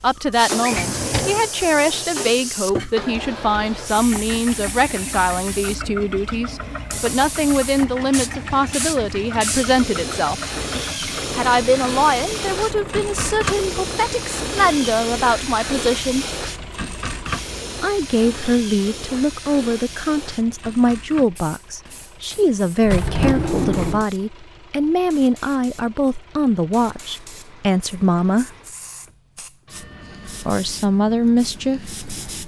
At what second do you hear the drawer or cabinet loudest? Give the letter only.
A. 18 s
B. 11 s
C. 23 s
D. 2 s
C.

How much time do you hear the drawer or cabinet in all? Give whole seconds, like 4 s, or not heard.
2 s.